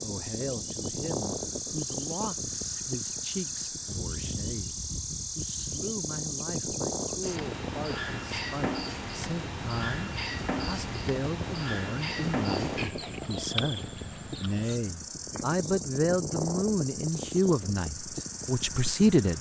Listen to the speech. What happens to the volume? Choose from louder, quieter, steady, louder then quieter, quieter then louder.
louder.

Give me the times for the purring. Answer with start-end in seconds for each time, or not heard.
not heard.